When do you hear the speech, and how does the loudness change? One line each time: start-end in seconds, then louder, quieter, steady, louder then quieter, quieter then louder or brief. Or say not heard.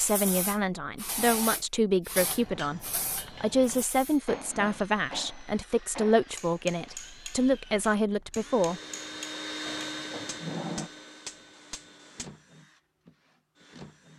0.0-8.8 steady.